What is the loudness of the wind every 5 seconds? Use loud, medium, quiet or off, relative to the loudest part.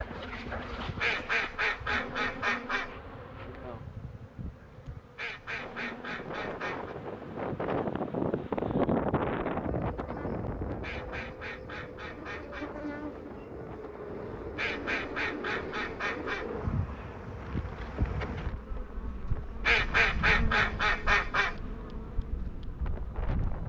off, loud, medium, quiet, quiet.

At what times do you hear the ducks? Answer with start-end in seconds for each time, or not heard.
1.0-3.0, 5.2-7.0, 10.8-12.7, 14.6-16.5, 19.6-21.6.